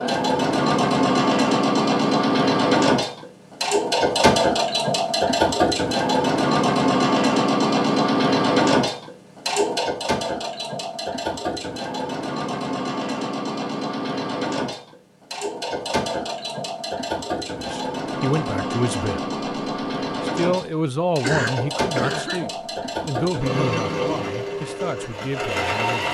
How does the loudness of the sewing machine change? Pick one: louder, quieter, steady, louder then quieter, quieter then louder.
quieter.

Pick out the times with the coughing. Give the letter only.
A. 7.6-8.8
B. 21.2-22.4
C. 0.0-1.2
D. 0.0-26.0
B.